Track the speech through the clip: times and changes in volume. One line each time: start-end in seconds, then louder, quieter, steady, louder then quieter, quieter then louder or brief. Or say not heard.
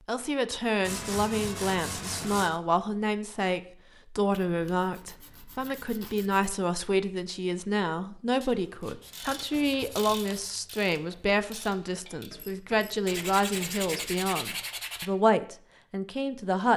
0.1-16.7 steady.